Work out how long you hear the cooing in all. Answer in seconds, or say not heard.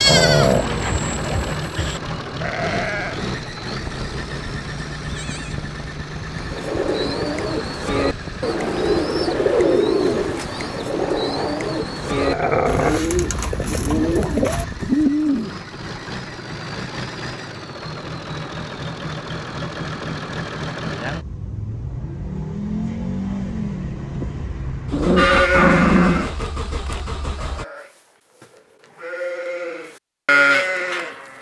9 s.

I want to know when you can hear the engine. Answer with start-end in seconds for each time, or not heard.
0.0-27.6.